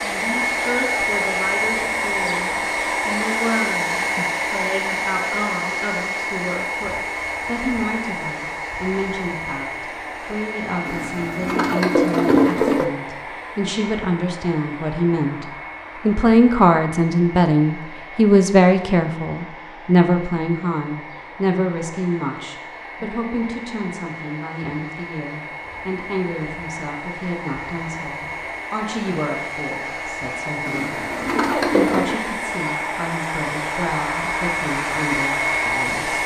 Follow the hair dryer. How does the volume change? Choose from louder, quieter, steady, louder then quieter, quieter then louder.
quieter then louder.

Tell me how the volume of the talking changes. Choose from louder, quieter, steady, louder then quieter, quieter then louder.
louder then quieter.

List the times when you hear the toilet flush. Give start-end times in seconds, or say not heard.
10.8-12.8, 30.6-32.1.